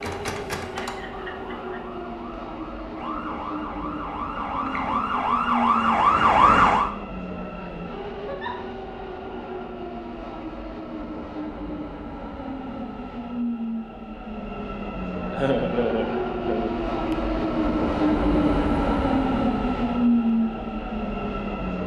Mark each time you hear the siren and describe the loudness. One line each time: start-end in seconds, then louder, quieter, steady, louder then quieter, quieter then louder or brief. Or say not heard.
0.0-6.9 quieter then louder.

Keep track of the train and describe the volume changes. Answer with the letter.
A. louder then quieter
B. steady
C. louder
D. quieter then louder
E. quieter
C.